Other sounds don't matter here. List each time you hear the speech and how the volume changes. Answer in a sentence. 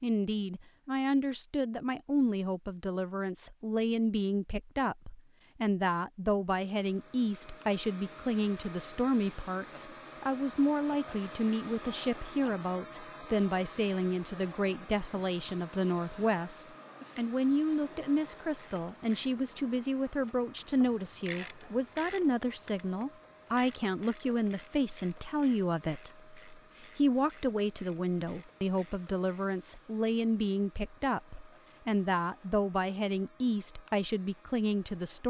The speech can be heard from 0.0 to 35.2 s, at a steady volume.